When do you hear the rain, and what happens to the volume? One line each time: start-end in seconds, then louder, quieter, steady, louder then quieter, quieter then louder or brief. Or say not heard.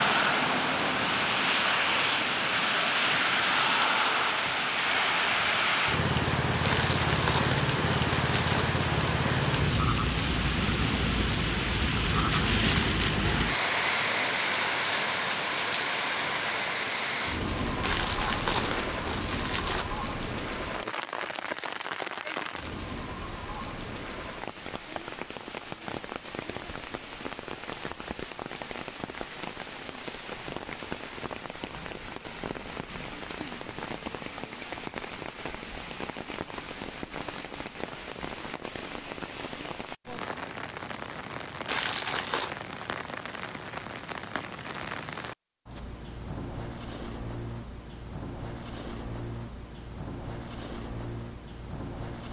0.0-52.2 quieter.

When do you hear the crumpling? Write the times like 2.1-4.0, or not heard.
6.6-8.7, 17.8-19.9, 41.6-42.5.